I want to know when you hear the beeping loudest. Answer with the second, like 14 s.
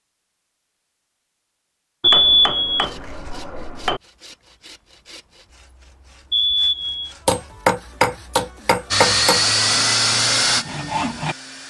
2 s.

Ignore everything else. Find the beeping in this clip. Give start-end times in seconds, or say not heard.
2.0-2.6, 6.3-7.2.